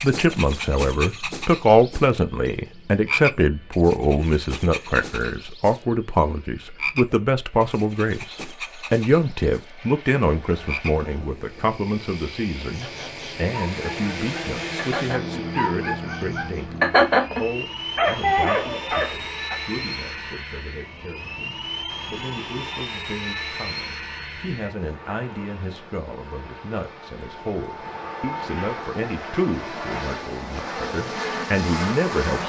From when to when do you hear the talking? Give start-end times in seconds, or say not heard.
0.0-32.4.